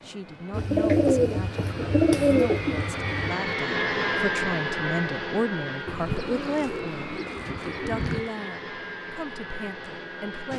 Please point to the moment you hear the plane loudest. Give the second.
4 s.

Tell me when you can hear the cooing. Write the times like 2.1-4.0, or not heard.
0.5-3.4, 5.8-8.3.